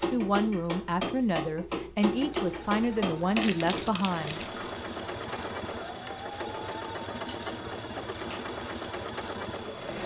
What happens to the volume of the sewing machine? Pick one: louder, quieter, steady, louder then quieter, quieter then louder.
louder.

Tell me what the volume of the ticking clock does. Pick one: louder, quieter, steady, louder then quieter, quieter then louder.
quieter.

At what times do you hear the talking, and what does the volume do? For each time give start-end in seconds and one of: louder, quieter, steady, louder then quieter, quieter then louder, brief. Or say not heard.
0.0-4.4 steady.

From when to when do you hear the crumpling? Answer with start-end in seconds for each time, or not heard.
3.4-4.5.